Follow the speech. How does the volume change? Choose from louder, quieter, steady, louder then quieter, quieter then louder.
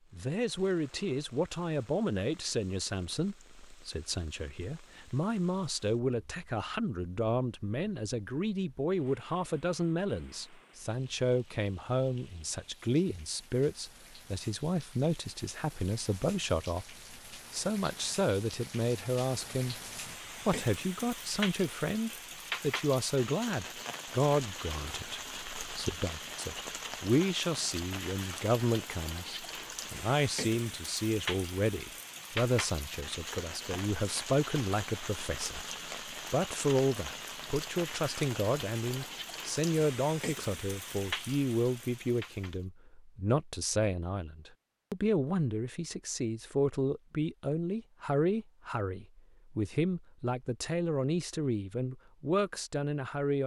steady.